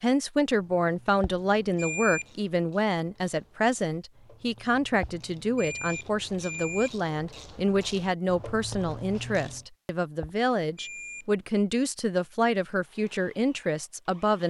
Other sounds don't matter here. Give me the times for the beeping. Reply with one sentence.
The beeping can be heard from 1.2 to 2.3 s, from 5.0 to 7.0 s and from 10.2 to 11.2 s.